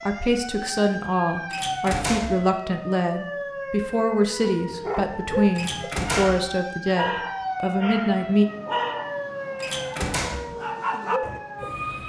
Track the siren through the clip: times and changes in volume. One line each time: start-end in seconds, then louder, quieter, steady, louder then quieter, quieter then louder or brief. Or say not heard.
0.0-12.0 steady.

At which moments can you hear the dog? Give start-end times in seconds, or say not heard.
4.6-11.4.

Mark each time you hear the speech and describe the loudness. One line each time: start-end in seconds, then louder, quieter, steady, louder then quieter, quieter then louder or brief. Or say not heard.
0.1-8.4 steady.